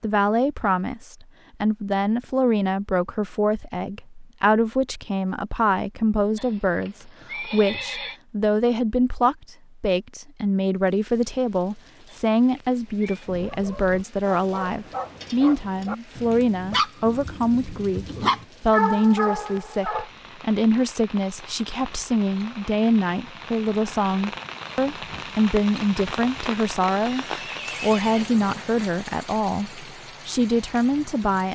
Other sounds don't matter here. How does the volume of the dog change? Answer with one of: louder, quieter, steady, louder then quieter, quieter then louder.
louder.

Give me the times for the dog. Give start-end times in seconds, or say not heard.
13.2-20.1.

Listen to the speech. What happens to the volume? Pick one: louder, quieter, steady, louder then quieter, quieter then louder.
steady.